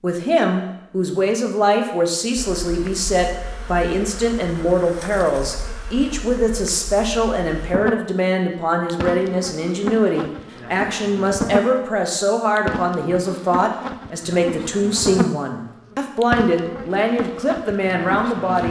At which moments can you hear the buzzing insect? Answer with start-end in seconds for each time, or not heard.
2.4-18.6.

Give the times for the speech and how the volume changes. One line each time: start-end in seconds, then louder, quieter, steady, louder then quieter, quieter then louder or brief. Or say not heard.
0.0-18.6 steady.